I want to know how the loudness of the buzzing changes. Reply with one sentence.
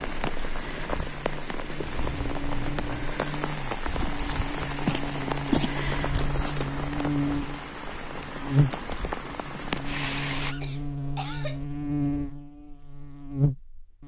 The volume of the buzzing goes up.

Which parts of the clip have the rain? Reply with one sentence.
You can hear the rain from 0.0 to 10.6 s.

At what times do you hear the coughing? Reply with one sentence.
The coughing can be heard from 1.8 to 3.1 s and from 10.4 to 11.7 s.